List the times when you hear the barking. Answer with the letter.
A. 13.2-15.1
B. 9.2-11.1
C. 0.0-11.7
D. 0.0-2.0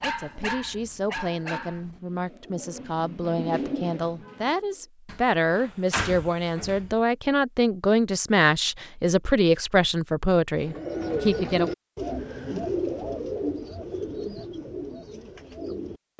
D.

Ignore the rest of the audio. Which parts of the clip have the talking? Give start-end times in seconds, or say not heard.
0.0-11.7.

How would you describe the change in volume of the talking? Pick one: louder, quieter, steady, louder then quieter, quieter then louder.
louder.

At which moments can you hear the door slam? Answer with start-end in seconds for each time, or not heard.
5.0-7.0.